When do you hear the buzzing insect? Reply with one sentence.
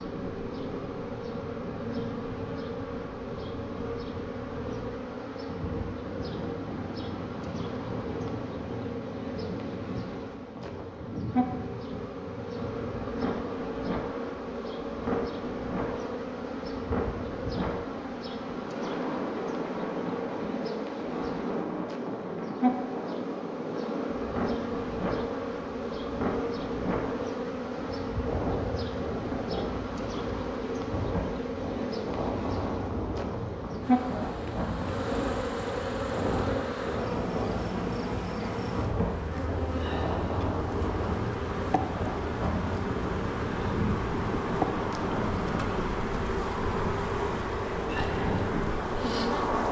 The buzzing insect can be heard from 0.0 to 49.6 s.